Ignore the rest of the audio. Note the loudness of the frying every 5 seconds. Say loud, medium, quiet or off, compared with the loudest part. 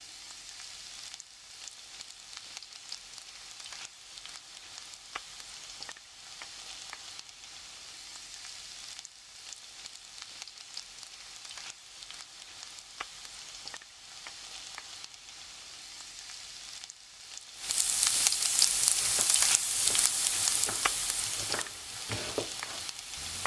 quiet, quiet, quiet, loud, loud.